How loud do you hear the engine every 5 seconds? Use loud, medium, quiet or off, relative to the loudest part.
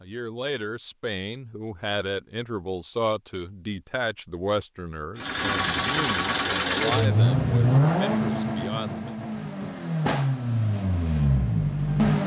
off, loud, loud.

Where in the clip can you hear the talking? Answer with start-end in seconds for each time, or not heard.
0.0-9.2.